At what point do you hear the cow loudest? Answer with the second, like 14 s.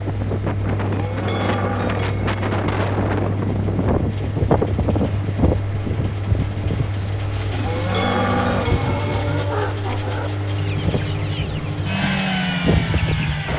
8 s.